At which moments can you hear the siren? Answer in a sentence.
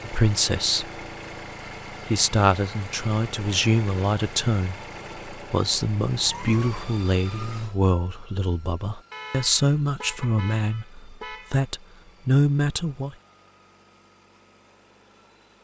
The siren can't be heard in this clip.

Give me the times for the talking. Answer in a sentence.
You can hear the talking from 0.0 to 1.0 s and from 1.9 to 13.2 s.